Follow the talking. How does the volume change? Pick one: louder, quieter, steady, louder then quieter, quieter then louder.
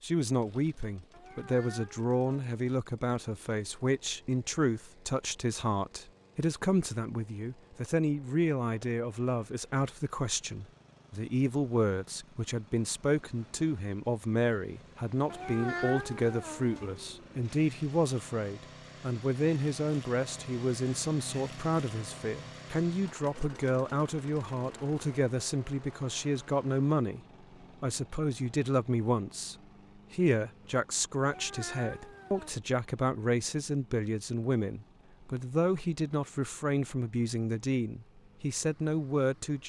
steady.